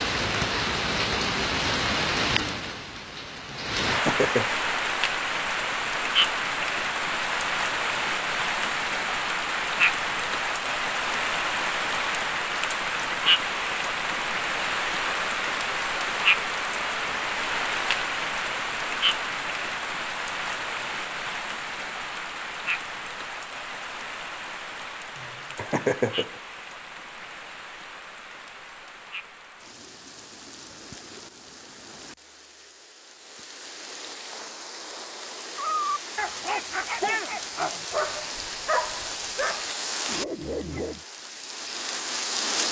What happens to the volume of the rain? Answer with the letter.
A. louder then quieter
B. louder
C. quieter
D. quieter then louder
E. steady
D.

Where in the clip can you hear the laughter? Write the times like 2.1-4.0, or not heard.
3.7-4.5, 25.1-26.4.